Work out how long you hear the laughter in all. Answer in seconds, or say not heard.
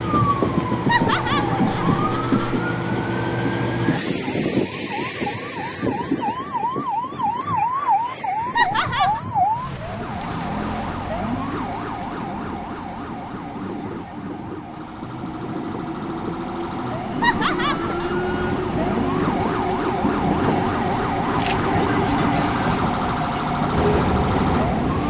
3 s.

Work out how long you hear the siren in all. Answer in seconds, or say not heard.
25 s.